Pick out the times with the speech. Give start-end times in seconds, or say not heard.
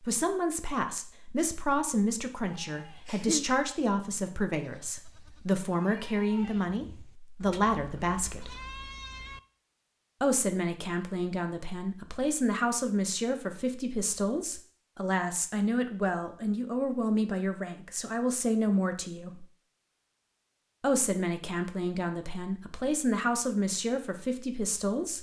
0.0-8.5, 10.2-19.4, 20.8-25.1.